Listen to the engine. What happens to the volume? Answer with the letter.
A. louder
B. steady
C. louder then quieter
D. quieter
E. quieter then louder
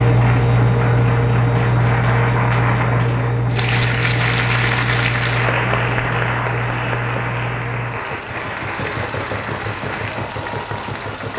D.